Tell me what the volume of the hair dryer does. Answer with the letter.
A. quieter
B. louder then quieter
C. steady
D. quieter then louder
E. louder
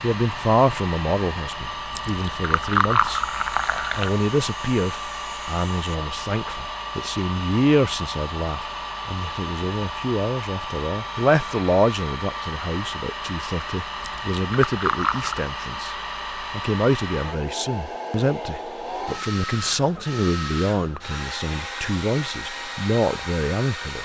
C.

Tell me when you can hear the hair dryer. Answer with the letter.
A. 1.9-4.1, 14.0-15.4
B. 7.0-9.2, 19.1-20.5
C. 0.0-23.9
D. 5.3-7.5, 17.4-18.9
C.